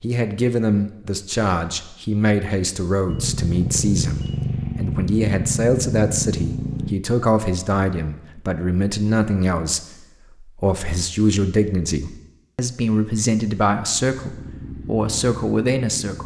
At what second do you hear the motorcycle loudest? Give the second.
4 s.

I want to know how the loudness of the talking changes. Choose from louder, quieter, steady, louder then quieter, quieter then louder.
steady.